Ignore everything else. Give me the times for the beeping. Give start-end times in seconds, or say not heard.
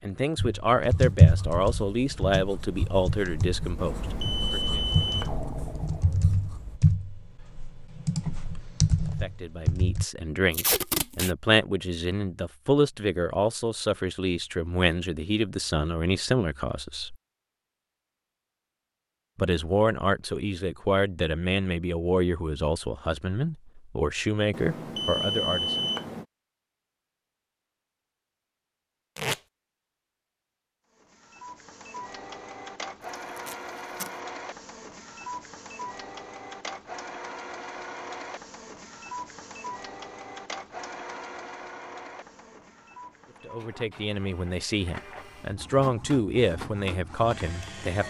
3.8-5.4, 24.5-26.2.